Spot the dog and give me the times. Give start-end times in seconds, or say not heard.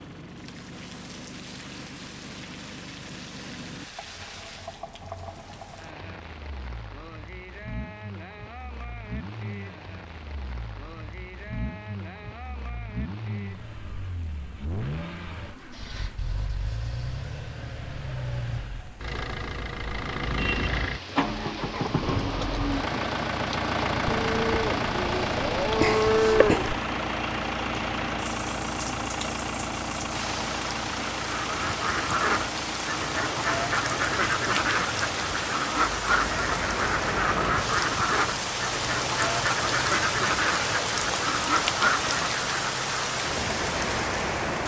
not heard.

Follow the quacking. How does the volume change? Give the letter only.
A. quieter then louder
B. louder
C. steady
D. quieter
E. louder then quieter
C.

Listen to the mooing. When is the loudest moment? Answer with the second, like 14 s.
26 s.